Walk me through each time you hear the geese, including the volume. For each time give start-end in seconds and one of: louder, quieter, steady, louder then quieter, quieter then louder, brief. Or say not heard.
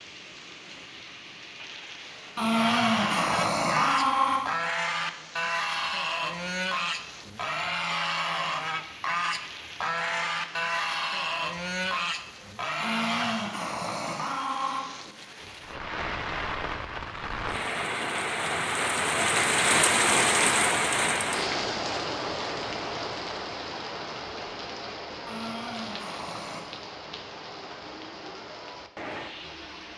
2.4-13.5 steady.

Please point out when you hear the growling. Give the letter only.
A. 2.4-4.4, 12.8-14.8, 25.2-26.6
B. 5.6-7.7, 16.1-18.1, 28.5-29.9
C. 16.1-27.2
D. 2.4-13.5
A.